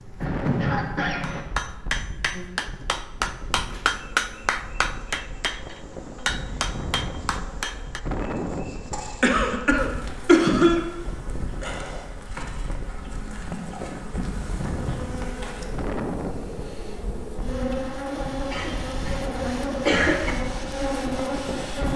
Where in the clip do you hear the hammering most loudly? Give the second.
4 s.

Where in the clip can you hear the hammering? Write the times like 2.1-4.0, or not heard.
1.2-8.0.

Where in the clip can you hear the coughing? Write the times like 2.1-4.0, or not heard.
0.2-1.4, 8.8-10.8, 18.5-20.4.